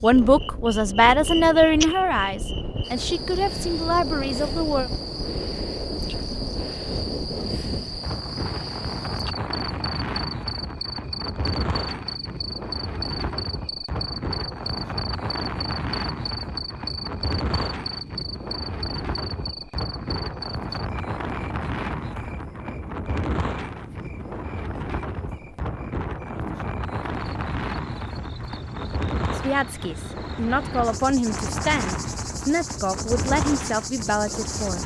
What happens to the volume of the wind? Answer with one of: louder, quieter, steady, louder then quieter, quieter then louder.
steady.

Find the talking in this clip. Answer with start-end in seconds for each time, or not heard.
0.0-4.9, 29.4-34.8.